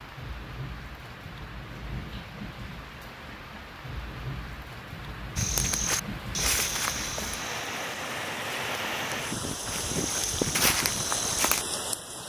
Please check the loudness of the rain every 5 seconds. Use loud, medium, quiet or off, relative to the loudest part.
medium, loud, loud.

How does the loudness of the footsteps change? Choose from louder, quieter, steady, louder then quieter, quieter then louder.
quieter then louder.